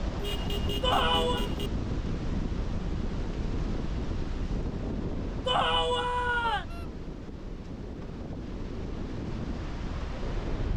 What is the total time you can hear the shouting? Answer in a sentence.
You can hear the shouting for 2 seconds altogether.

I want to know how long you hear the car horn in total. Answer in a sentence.
You can hear the car horn for 2 seconds altogether.